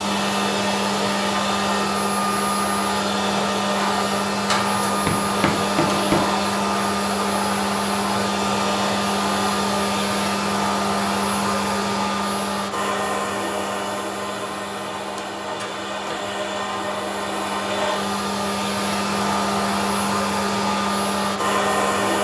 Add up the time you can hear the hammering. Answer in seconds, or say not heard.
2 s.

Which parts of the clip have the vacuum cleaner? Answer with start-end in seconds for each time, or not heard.
0.0-22.1.